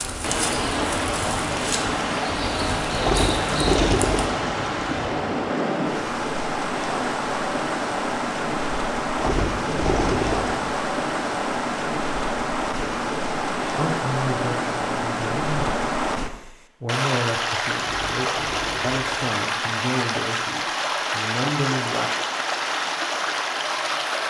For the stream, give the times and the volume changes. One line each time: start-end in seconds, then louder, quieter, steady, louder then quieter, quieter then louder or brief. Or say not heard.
0.0-24.2 steady.